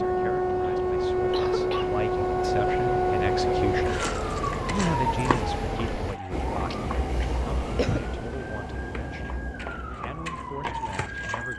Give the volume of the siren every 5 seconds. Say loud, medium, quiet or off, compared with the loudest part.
loud, medium, medium.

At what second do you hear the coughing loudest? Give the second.
8 s.